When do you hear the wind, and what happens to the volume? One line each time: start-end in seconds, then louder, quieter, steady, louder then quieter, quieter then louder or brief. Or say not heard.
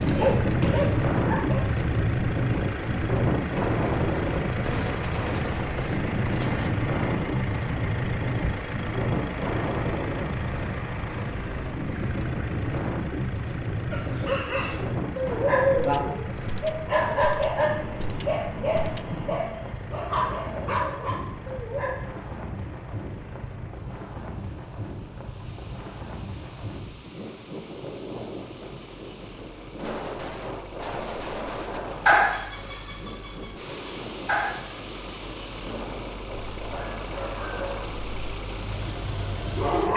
0.0-39.9 quieter.